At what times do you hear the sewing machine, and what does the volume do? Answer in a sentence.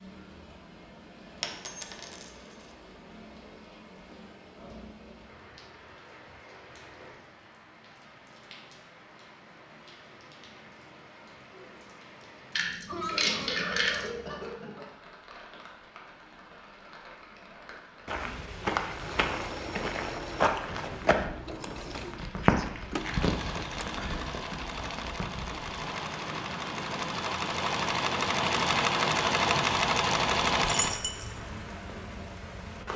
You can hear the sewing machine from 18.9 to 31.0 s, getting louder.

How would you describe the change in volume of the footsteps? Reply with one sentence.
The volume of the footsteps goes down, then up.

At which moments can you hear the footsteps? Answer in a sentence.
You can hear the footsteps from 18.1 to 23.9 s.